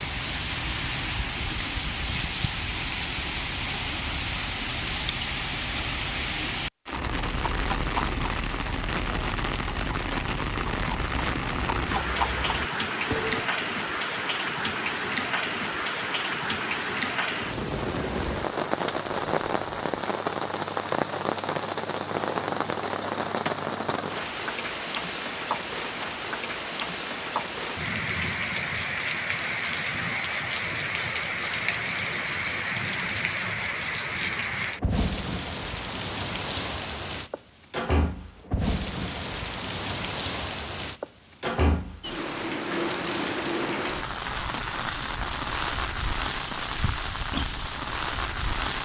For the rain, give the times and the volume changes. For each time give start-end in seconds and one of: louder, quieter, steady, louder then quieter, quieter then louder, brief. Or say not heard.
0.0-48.8 steady.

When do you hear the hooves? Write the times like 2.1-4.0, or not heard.
6.9-13.5.